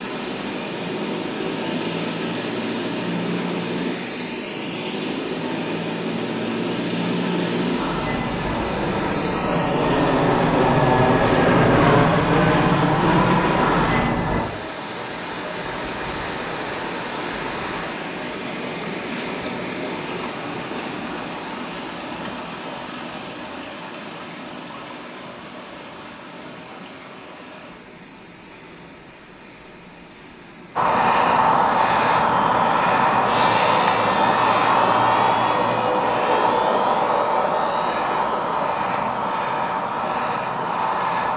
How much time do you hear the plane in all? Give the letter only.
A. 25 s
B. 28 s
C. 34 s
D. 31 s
A.